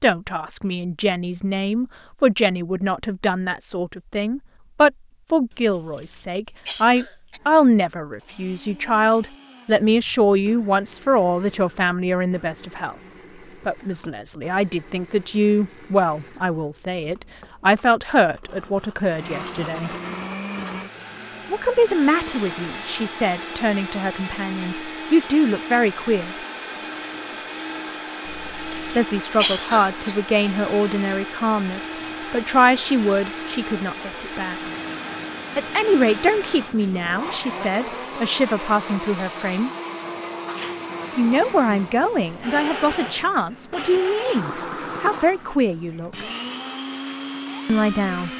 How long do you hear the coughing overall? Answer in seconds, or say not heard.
4 s.